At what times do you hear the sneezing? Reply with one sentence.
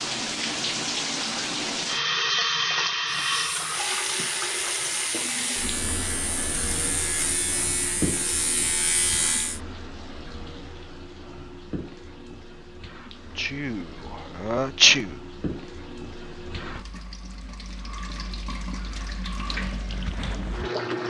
You can hear the sneezing from 13.3 to 15.1 s.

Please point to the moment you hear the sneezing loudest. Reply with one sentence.
The loudest moment of the sneezing is at 15 seconds.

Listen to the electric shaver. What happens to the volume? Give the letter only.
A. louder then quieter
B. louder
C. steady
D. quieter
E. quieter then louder
B.